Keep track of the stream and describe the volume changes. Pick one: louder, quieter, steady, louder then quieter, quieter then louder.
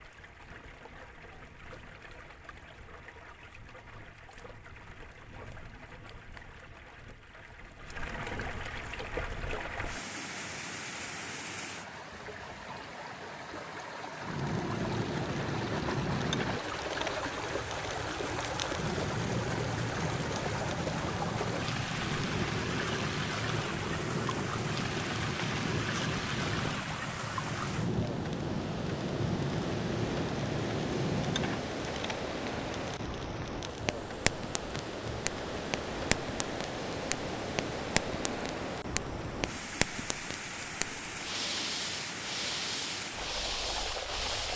louder.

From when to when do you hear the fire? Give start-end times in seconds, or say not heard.
14.2-44.5.